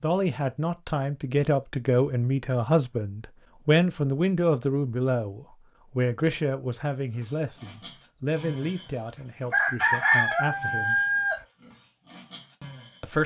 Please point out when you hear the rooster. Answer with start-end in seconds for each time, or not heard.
9.5-11.4.